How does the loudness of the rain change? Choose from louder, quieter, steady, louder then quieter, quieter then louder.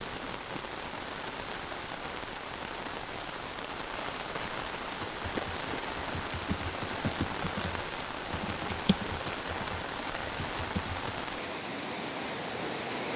steady.